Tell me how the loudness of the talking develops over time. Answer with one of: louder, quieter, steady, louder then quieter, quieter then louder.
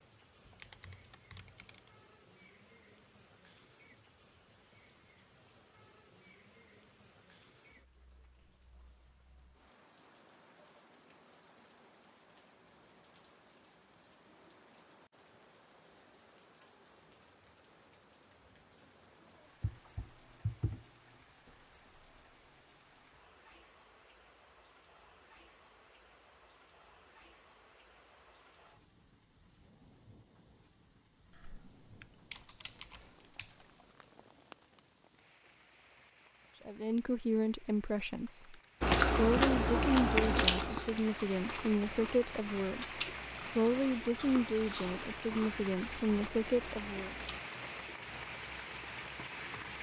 steady.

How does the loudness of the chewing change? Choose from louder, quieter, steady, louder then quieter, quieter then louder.
quieter.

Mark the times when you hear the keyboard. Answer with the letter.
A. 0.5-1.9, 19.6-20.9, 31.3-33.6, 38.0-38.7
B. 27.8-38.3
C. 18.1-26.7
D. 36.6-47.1
A.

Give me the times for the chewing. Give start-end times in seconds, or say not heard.
38.8-47.4.